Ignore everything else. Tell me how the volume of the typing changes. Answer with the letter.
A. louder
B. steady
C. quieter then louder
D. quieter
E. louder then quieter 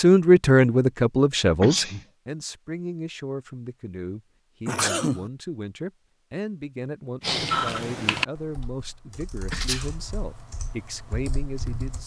C.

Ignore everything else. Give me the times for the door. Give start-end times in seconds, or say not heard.
not heard.